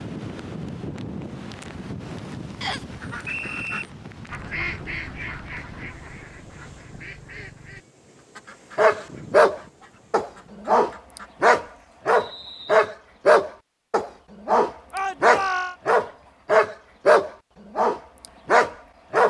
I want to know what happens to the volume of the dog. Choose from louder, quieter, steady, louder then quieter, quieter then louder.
steady.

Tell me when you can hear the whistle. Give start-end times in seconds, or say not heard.
2.6-3.9, 12.1-12.9.